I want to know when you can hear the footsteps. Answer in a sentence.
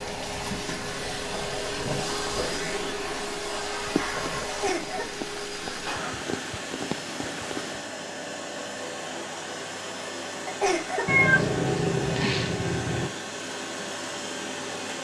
The footsteps can't be heard in this clip.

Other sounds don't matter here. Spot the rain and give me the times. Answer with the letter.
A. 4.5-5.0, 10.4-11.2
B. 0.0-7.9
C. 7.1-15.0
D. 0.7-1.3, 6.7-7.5
B.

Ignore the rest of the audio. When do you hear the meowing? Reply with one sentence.
The meowing can be heard from 11.1 to 13.1 s.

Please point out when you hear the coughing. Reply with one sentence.
The coughing can be heard from 4.5 to 5.0 s and from 10.4 to 11.2 s.